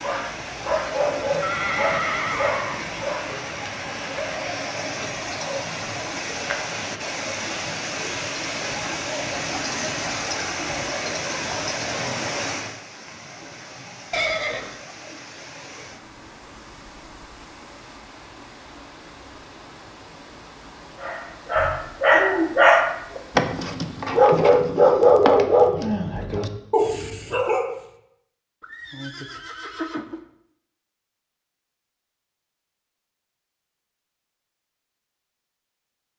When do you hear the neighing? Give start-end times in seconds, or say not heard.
1.4-3.0, 14.1-14.8, 28.6-30.2.